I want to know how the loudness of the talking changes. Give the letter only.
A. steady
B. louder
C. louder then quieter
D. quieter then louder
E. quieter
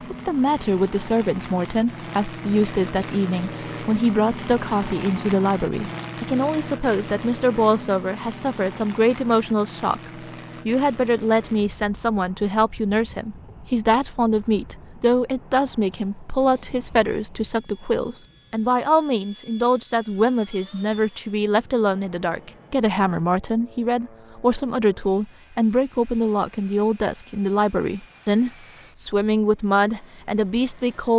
A.